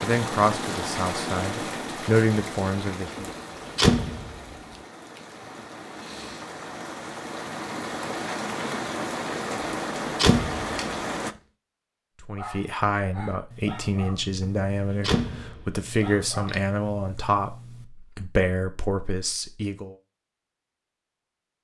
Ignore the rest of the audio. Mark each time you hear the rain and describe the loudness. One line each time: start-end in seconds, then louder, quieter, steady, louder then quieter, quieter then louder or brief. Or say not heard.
0.0-11.3 quieter then louder.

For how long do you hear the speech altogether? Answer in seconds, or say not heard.
11 s.